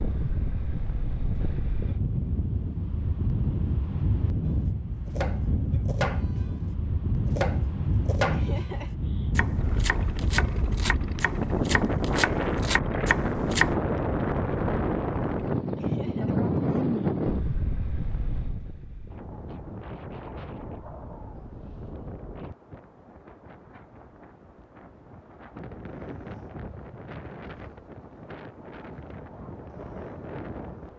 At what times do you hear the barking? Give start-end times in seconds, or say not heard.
not heard.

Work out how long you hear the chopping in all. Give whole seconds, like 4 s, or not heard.
9 s.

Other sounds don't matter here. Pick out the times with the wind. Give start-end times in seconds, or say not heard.
0.0-30.9.